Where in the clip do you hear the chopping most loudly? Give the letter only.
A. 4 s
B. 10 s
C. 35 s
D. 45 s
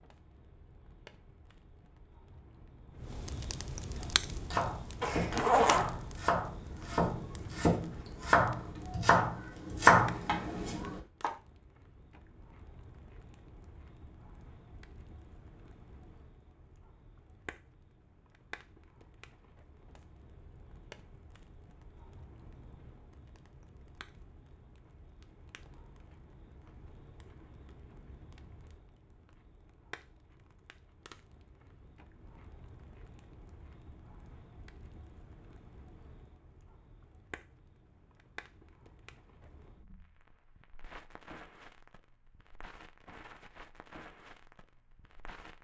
B.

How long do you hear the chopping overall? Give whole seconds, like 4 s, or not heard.
7 s.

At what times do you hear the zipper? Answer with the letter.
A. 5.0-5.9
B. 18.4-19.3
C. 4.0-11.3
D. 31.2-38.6
A.